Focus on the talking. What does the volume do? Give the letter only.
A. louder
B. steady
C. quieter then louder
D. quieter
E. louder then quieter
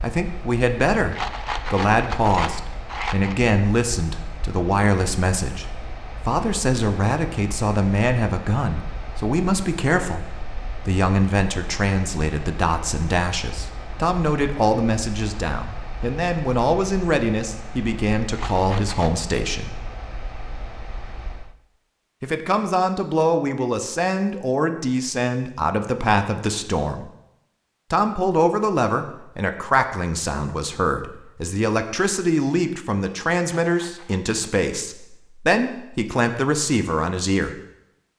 B.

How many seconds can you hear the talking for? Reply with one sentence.
The talking can be heard for 34 seconds in total.